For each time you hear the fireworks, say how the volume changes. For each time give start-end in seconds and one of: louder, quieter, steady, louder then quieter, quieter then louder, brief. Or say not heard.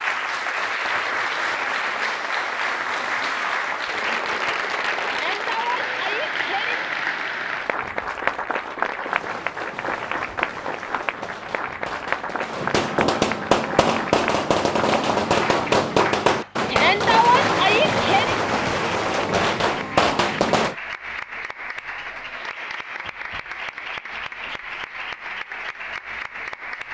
9.0-20.8 louder.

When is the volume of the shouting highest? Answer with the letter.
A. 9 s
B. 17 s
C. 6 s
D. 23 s
B.